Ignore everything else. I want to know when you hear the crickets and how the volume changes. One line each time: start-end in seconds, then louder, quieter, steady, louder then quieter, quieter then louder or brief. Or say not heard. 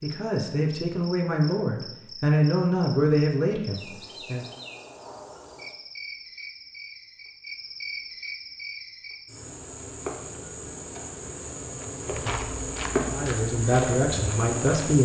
0.0-15.0 louder.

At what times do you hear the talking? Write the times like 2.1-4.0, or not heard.
0.0-4.5, 13.1-15.0.